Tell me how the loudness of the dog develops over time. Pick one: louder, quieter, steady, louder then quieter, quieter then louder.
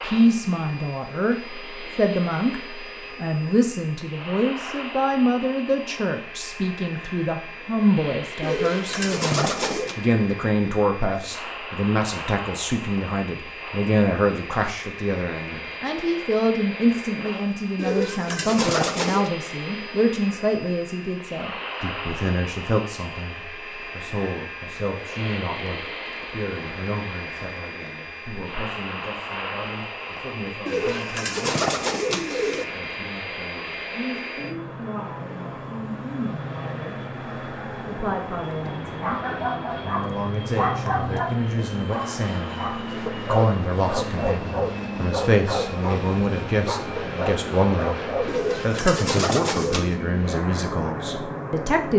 steady.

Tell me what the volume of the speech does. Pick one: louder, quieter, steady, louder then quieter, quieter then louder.
quieter then louder.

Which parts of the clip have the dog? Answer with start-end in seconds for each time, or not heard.
38.6-48.4.